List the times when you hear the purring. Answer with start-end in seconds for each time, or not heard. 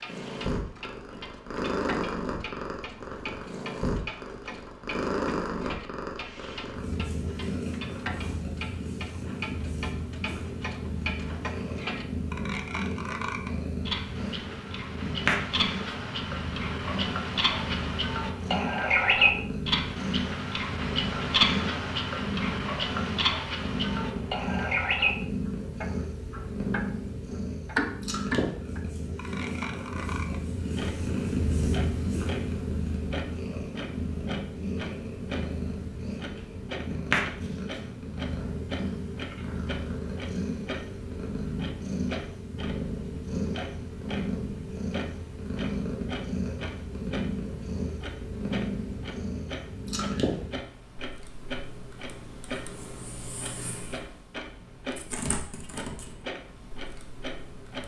0.0-57.8.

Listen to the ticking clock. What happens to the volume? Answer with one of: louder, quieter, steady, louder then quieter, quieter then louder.
louder then quieter.